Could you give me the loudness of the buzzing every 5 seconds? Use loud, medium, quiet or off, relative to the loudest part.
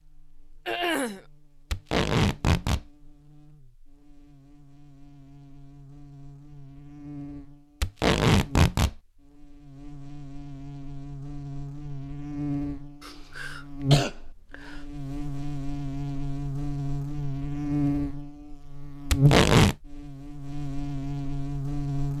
quiet, quiet, loud, loud, loud.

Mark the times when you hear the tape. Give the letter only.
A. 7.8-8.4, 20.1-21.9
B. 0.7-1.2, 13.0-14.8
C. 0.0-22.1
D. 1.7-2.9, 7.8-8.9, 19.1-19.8
D.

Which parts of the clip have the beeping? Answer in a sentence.
You can't hear the beeping here.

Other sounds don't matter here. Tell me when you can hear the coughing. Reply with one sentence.
You can hear the coughing from 0.7 to 1.2 s and from 13.0 to 14.8 s.